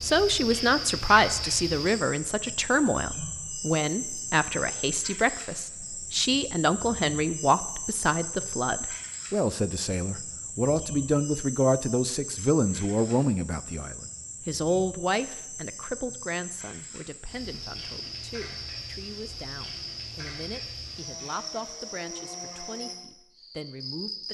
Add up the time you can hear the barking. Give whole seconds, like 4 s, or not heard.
not heard.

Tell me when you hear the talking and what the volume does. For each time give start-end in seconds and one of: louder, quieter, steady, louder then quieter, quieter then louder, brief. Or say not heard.
0.0-24.2 quieter.